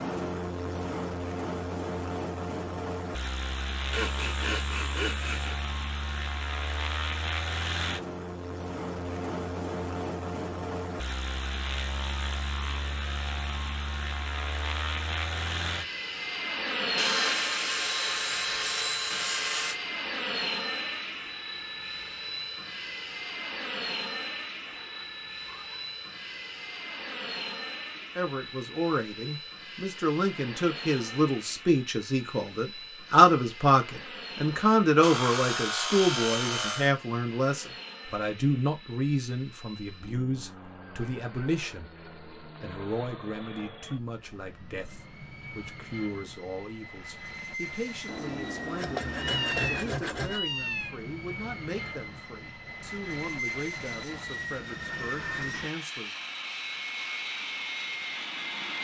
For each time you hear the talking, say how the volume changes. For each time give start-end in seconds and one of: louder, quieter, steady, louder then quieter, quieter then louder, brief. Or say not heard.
27.9-56.1 quieter.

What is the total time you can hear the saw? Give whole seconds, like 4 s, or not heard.
9 s.